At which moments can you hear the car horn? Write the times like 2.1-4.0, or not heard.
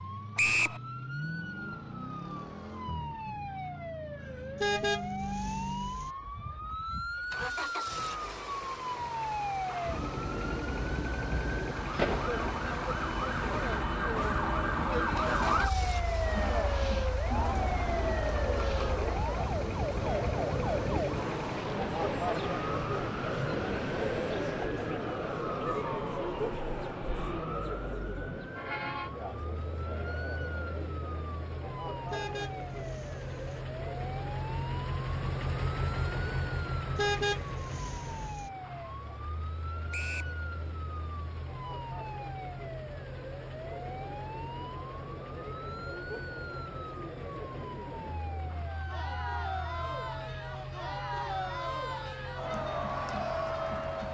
4.6-6.1, 32.1-33.6, 37.0-38.5.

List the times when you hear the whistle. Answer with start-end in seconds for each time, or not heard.
0.3-0.8, 39.9-40.4.